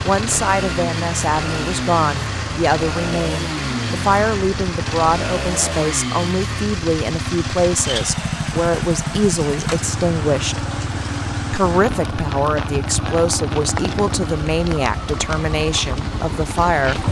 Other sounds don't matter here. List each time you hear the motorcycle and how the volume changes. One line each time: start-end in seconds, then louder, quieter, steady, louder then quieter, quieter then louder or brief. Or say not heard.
0.0-17.0 steady.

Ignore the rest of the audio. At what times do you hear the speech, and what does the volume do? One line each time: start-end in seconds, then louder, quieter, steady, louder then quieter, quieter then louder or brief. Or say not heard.
0.0-10.7 steady
11.5-17.0 steady.